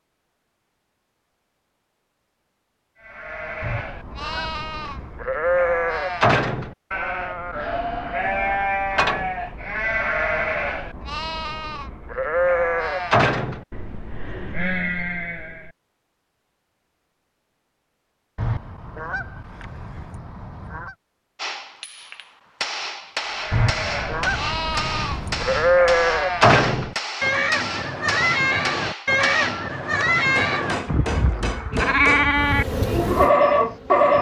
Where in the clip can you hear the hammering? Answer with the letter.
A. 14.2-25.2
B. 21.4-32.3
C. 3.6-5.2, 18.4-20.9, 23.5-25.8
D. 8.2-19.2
B.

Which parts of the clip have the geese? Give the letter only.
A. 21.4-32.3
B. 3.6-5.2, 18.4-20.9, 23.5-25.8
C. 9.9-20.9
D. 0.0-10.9
B.